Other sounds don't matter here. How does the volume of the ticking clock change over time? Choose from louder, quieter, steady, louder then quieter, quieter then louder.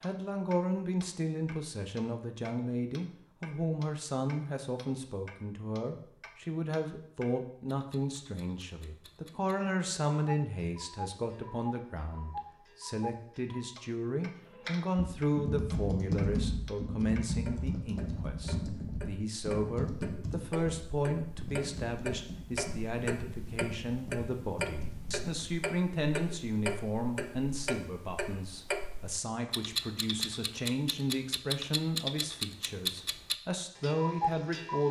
louder.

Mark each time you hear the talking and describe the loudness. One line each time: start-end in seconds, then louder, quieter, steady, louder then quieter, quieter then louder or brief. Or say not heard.
0.0-34.8 steady.